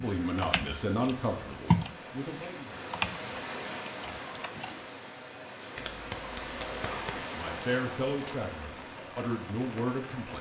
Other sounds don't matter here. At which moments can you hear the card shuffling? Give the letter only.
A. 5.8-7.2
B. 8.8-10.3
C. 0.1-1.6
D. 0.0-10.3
A.